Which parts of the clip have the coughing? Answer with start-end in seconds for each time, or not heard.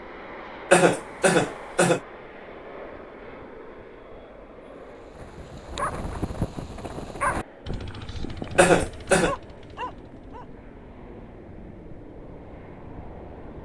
0.7-2.0, 8.6-9.3.